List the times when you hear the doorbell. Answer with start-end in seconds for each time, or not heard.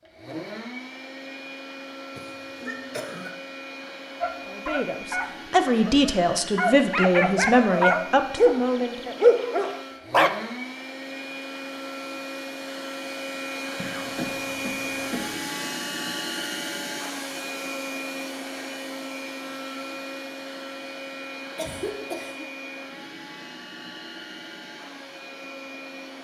not heard.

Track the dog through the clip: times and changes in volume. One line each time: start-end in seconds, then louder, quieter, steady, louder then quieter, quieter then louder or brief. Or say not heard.
4.2-10.3 louder.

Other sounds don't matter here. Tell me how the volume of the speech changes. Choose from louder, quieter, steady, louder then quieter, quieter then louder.
steady.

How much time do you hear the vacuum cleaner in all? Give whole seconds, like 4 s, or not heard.
26 s.